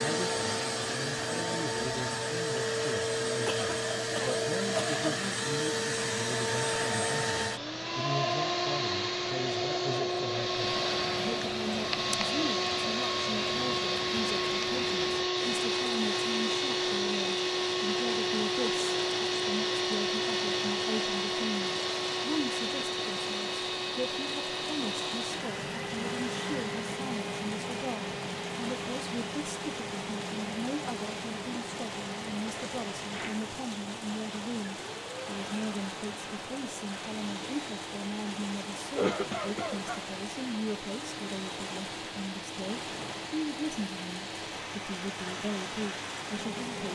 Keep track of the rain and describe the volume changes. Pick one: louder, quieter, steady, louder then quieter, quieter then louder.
steady.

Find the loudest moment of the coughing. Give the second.
39 s.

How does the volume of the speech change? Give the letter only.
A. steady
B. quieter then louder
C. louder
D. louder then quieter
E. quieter
A.